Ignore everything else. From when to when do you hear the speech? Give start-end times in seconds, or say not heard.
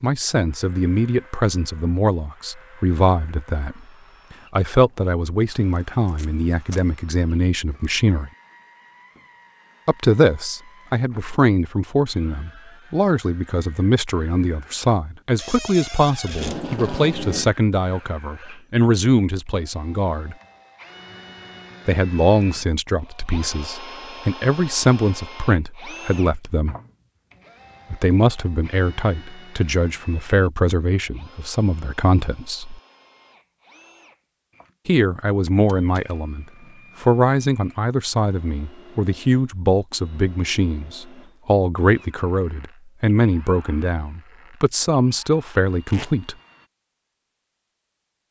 0.0-3.8, 4.5-8.3, 9.8-20.4, 21.9-26.8, 27.9-32.8, 34.9-46.4.